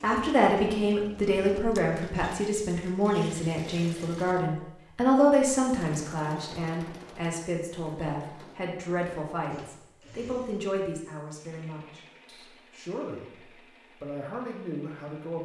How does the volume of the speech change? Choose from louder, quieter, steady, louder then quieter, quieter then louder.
quieter.